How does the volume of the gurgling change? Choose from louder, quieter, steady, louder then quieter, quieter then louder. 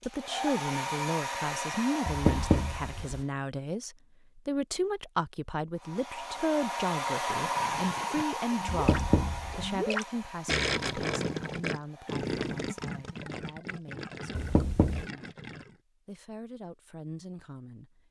louder then quieter.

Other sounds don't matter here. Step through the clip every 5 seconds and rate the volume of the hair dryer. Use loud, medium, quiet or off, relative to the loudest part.
loud, loud, quiet, off.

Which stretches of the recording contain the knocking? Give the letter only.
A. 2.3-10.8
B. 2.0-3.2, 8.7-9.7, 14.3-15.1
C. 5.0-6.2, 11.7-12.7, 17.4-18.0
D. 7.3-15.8
B.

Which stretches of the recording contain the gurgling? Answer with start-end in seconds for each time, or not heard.
7.3-15.8.